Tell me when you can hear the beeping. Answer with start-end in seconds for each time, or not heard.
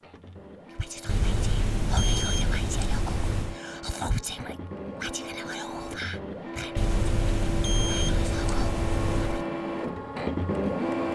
1.1-3.5, 6.8-9.4.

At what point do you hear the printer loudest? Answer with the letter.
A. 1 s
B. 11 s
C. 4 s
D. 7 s
B.